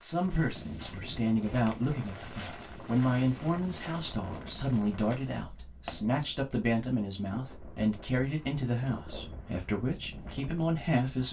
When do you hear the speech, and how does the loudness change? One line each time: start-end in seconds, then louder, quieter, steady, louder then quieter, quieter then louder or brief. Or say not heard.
0.0-11.2 steady.